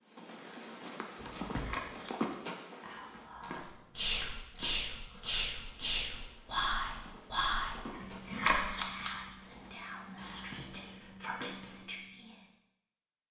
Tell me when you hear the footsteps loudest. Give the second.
2 s.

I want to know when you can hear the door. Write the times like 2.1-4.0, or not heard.
1.1-1.9, 10.2-10.9.